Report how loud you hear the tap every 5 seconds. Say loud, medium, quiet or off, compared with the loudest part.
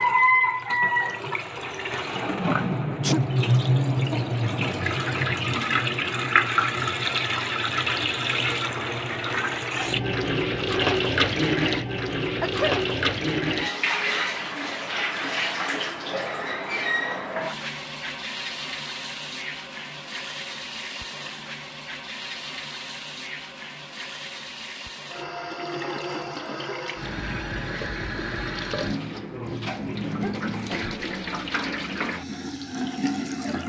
loud, loud, loud, medium, quiet, medium, medium.